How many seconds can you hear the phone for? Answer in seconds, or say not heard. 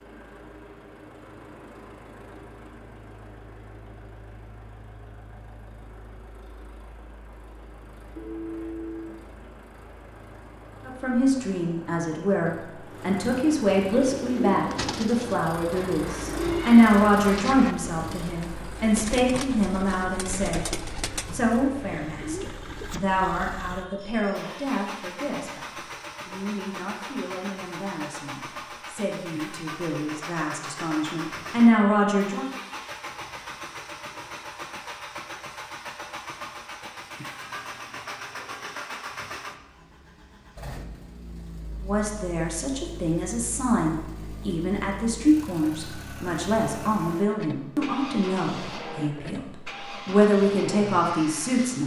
3 s.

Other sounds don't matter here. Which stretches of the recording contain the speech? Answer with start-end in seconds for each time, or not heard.
10.8-32.5, 41.8-51.8.